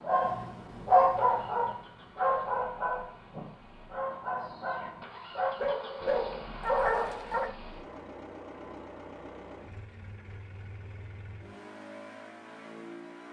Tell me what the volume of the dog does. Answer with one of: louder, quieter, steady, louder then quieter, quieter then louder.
quieter then louder.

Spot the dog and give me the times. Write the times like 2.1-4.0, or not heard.
0.0-7.5.